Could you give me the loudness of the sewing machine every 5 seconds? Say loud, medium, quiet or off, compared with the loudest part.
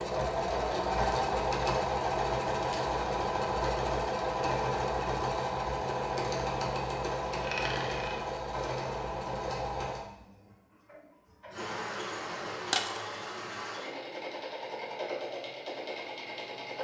loud, loud, medium, medium.